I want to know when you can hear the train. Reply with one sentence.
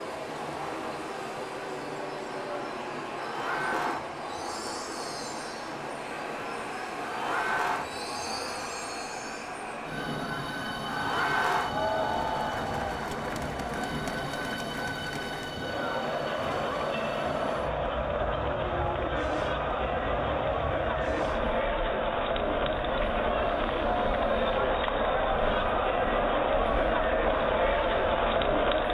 You can hear the train from 0.0 to 28.8 s.